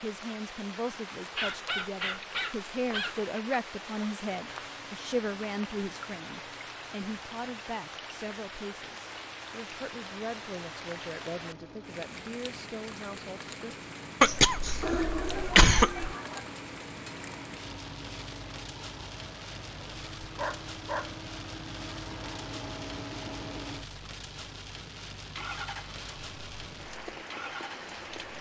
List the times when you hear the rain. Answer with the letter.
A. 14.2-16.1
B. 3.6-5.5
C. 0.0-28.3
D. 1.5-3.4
C.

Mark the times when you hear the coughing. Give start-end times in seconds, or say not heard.
14.2-16.1.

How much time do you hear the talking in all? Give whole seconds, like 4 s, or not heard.
14 s.